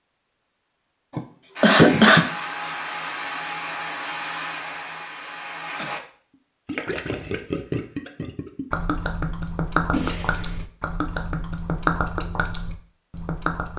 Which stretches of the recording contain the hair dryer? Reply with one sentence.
The hair dryer can be heard from 1.6 to 6.0 s.